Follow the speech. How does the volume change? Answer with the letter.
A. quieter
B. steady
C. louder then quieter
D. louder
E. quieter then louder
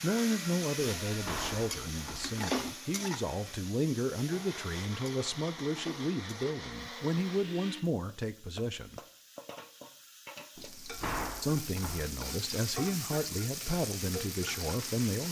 B.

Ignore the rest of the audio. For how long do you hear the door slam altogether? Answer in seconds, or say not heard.
3 s.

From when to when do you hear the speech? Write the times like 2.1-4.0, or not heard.
0.0-9.0, 11.4-15.2.